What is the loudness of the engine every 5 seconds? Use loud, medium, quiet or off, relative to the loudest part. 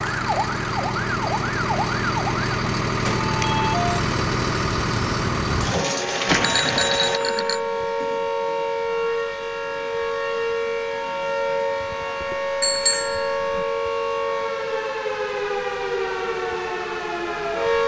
loud, loud, off, off.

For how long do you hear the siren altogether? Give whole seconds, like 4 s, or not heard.
18 s.